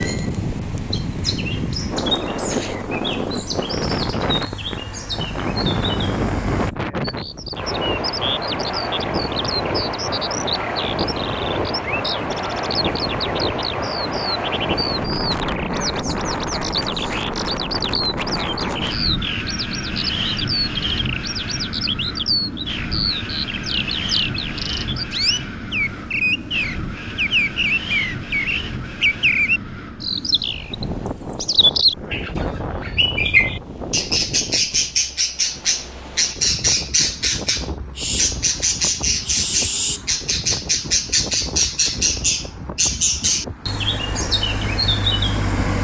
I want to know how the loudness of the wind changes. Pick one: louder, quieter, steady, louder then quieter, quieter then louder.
quieter.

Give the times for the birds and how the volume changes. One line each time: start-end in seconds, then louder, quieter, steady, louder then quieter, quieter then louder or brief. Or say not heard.
0.0-45.7 louder.